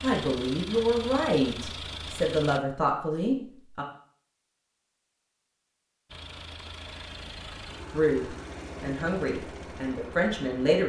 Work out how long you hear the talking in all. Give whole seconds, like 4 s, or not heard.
7 s.